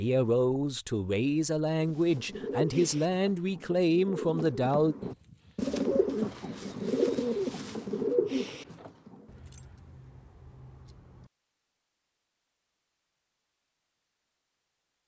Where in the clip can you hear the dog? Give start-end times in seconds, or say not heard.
not heard.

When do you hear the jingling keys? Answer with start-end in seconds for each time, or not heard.
5.0-5.6, 9.2-11.3.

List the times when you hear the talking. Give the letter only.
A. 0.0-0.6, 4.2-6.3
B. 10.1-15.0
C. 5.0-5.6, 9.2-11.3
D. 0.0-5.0
D.